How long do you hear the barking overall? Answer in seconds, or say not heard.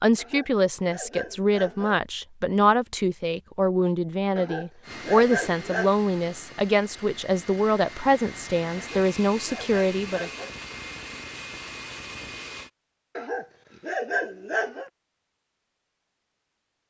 7 s.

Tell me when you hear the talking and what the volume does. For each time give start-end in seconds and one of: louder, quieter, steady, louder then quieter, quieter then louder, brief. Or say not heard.
0.0-10.3 steady.